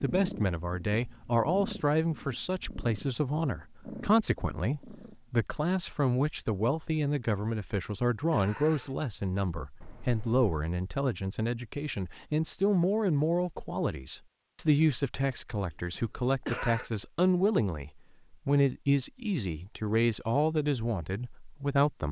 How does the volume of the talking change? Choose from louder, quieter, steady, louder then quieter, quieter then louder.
steady.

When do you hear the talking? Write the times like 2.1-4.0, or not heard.
0.0-22.0.